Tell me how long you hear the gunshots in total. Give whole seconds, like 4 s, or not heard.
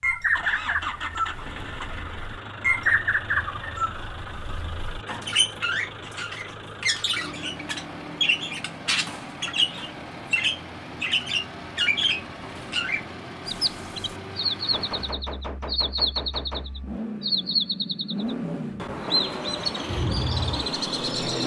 2 s.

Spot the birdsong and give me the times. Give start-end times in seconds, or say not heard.
0.0-21.4.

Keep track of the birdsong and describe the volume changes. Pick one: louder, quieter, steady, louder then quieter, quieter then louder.
steady.